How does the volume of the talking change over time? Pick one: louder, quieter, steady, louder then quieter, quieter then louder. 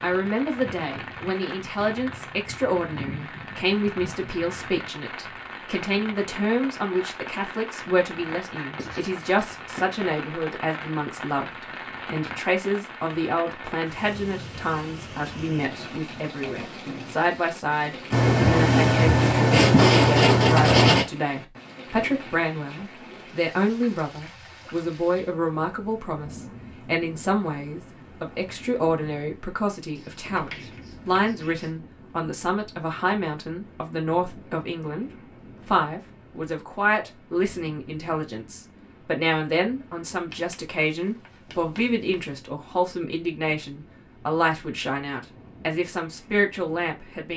steady.